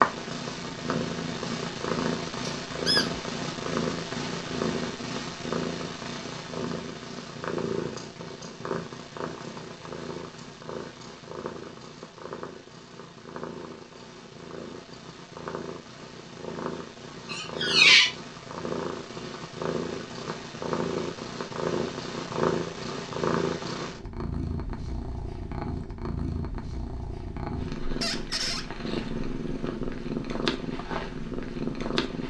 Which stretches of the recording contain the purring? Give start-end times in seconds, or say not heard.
0.0-32.2.